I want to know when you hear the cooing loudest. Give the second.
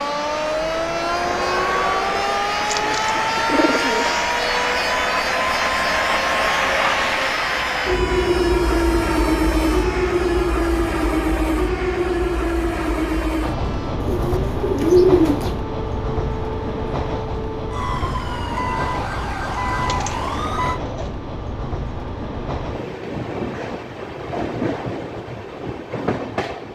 15 s.